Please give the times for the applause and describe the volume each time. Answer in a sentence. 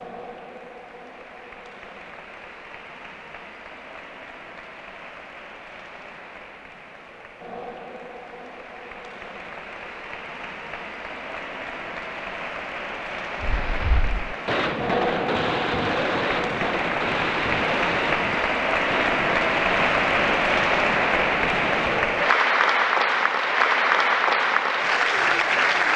The applause can be heard from 0.0 to 25.9 s, getting louder.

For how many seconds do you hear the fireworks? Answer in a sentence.
The fireworks can be heard for 9 seconds in total.